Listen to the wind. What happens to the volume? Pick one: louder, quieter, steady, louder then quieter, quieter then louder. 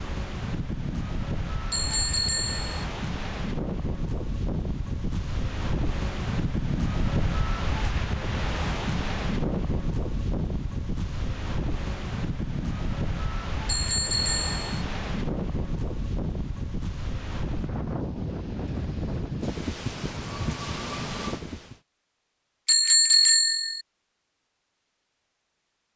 steady.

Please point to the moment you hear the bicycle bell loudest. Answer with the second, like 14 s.
23 s.